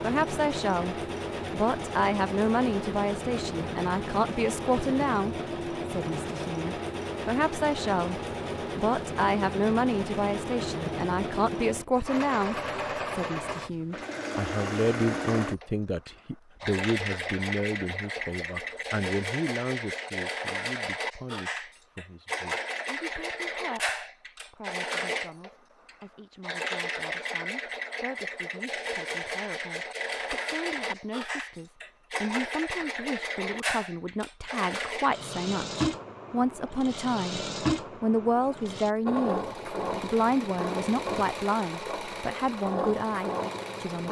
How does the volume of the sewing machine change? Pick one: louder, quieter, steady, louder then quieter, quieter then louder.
steady.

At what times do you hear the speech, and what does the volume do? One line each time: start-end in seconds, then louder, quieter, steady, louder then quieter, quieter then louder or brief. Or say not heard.
0.0-44.0 quieter then louder.